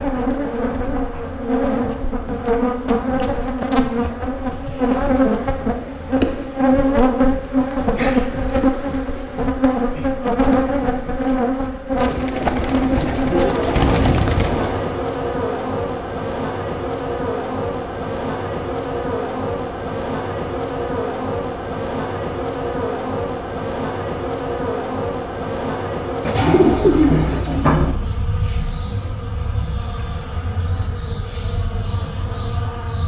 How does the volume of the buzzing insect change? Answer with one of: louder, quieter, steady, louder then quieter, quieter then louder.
quieter.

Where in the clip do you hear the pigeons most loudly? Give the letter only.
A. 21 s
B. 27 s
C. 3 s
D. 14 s
B.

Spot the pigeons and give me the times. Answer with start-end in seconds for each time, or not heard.
11.9-14.8, 26.2-27.9.